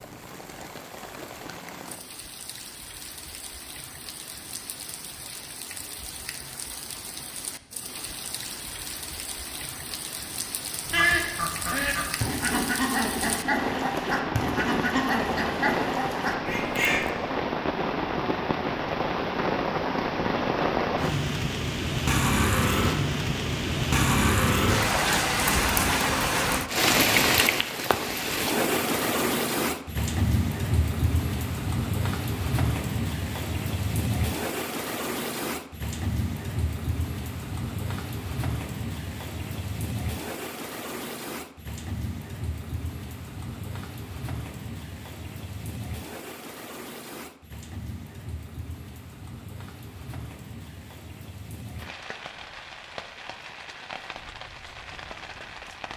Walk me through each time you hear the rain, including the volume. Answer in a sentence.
You can hear the rain from 0.0 to 55.9 s, getting louder then quieter.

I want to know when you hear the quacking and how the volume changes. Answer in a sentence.
You can hear the quacking from 10.8 to 17.1 s, at a steady volume.